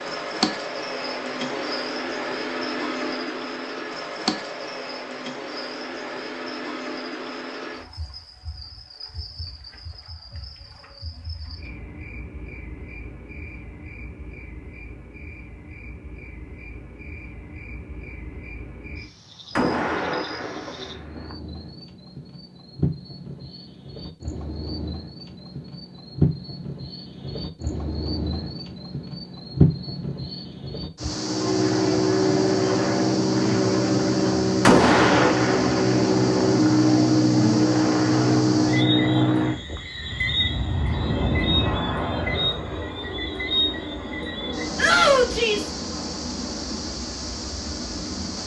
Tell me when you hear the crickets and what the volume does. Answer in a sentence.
You can hear the crickets from 0.0 to 48.4 s, getting quieter then louder.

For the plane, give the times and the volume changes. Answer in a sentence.
You can hear the plane from 31.1 to 48.4 s, getting quieter.